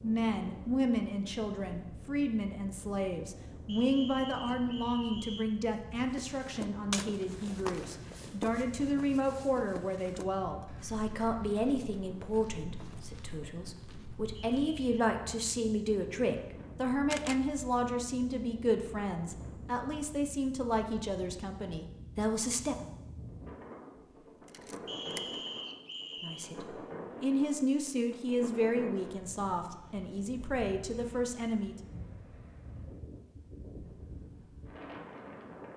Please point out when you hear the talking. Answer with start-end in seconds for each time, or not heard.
0.0-22.9, 26.2-31.8.